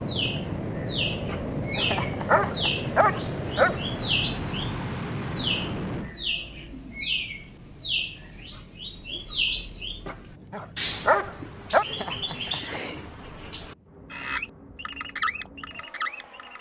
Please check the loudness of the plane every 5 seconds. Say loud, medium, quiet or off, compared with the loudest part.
loud, medium, quiet, quiet.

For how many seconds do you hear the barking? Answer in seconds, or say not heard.
4 s.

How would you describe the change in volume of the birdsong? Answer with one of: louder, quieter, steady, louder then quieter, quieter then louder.
steady.